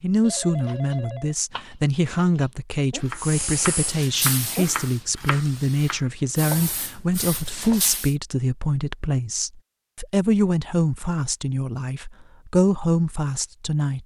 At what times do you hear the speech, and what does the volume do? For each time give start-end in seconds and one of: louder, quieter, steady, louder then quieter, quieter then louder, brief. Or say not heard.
0.0-14.0 steady.